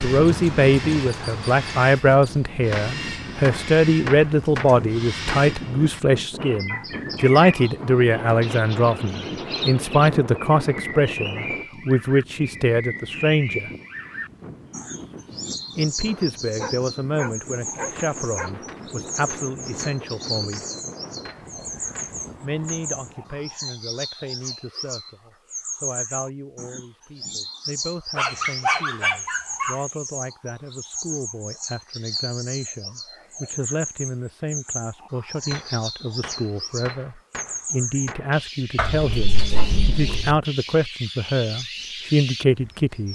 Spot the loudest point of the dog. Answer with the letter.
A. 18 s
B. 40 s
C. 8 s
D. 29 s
D.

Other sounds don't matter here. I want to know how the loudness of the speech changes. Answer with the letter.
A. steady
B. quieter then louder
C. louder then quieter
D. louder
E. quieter
B.